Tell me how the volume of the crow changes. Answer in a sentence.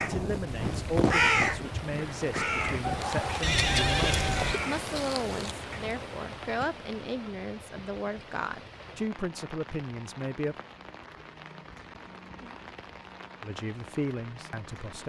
The loudness of the crow goes down.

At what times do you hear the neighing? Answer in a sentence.
The neighing can be heard from 3.4 to 4.6 s.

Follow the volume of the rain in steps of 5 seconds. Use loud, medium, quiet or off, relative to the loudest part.
loud, medium, medium.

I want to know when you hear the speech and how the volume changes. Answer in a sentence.
You can hear the speech from 0.0 to 10.6 s, at a steady volume; and briefly from 13.4 to 15.0 s.